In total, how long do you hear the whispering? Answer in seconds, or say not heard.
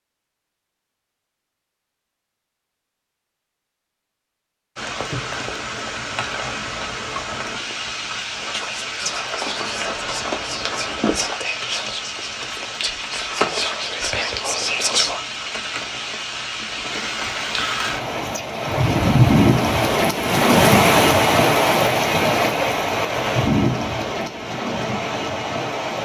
7 s.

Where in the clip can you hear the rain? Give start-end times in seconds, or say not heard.
4.8-26.0.